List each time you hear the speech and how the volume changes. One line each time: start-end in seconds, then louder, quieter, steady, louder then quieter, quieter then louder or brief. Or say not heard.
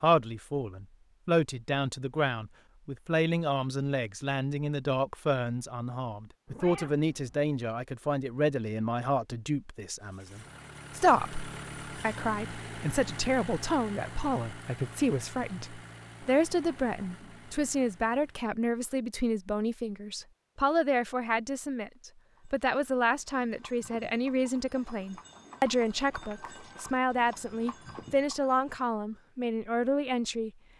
0.0-30.5 steady.